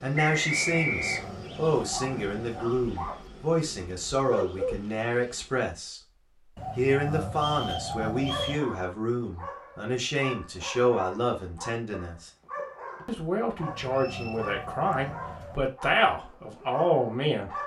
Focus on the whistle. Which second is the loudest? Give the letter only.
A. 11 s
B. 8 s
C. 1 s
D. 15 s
C.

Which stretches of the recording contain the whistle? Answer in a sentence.
You can hear the whistle from 0.1 to 1.3 s, from 7.3 to 8.7 s and from 13.8 to 14.5 s.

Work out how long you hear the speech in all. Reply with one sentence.
The speech can be heard for 16 seconds in total.